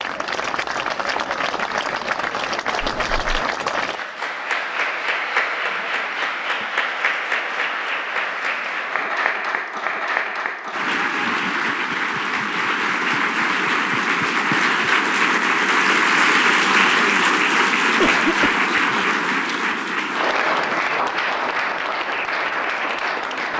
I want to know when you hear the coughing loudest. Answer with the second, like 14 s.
18 s.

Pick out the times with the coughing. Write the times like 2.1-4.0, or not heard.
2.8-3.4, 18.0-18.9.